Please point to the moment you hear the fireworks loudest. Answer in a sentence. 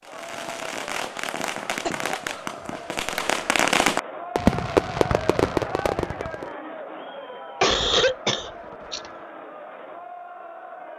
The volume of the fireworks peaks at 5 seconds.